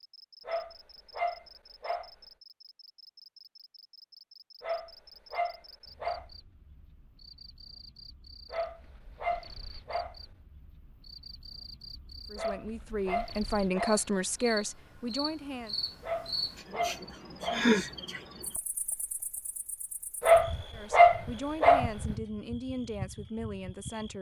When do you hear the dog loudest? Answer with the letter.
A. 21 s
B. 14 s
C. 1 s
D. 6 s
A.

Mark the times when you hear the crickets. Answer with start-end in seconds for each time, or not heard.
0.0-24.1.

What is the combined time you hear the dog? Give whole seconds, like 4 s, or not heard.
10 s.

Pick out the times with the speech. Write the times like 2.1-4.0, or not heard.
12.3-15.8, 20.7-24.1.